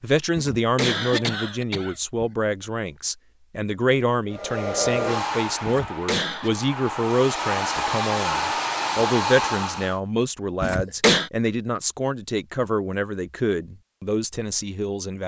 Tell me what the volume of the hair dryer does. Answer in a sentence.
The loudness of the hair dryer goes down, then up.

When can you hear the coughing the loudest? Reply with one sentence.
The volume of the coughing peaks at 11 seconds.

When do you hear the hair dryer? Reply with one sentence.
You can hear the hair dryer from 4.3 to 10.0 s.